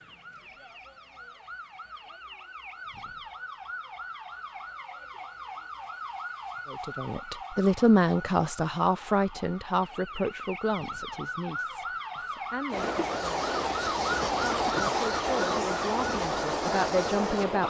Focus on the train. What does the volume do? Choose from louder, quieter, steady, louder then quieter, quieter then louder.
steady.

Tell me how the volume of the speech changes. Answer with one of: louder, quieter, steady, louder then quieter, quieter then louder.
quieter then louder.